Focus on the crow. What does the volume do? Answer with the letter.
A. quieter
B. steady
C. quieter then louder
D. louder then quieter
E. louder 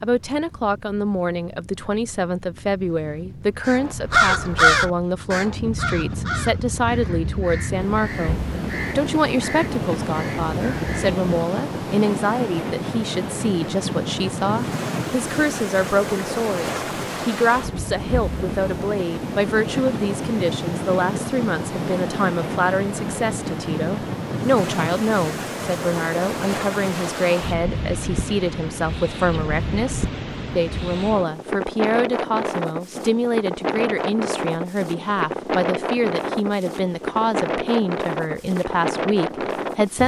A.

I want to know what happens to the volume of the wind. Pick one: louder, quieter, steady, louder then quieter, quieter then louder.
louder.